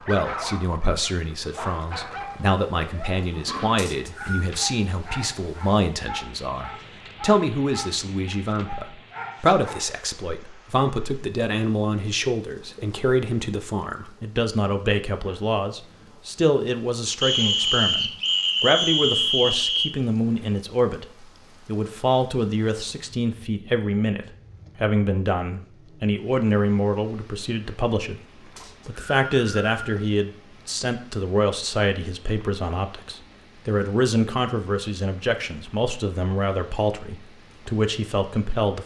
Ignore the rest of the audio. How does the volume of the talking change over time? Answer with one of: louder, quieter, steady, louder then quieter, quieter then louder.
steady.